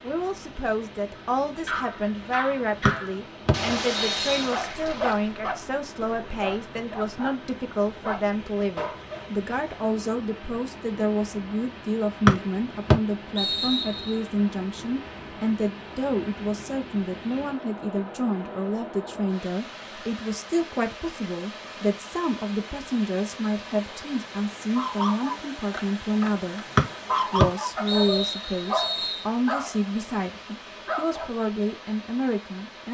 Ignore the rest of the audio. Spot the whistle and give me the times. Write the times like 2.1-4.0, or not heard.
2.9-4.5, 12.2-14.2, 26.8-29.2.